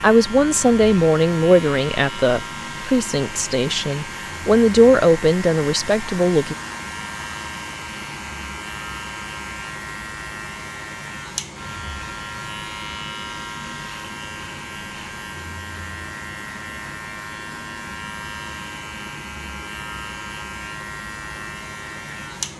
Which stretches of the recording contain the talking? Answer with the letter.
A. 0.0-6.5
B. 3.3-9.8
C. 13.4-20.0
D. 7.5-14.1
A.